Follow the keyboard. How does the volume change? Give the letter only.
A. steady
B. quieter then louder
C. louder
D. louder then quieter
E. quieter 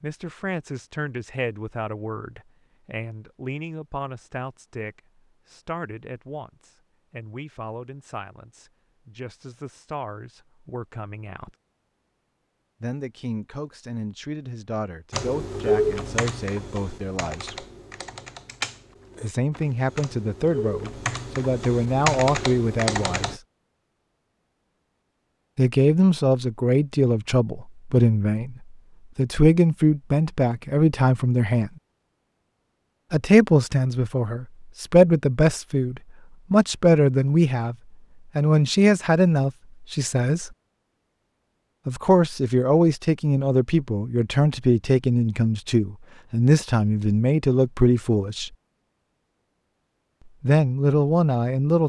B.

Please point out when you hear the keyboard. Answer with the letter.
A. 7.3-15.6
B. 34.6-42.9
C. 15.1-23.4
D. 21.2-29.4
C.